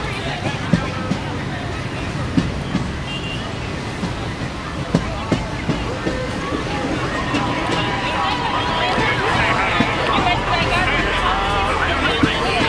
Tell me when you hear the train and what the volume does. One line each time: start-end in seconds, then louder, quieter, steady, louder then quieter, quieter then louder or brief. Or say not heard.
0.0-12.6 steady.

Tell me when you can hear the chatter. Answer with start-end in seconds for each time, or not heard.
0.0-12.6.